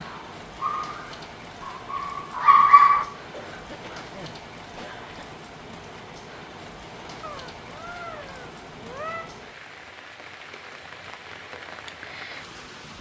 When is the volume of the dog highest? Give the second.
3 s.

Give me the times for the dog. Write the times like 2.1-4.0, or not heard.
0.0-3.0.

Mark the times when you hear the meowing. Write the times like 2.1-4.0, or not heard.
7.2-9.2.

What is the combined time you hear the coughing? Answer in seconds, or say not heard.
2 s.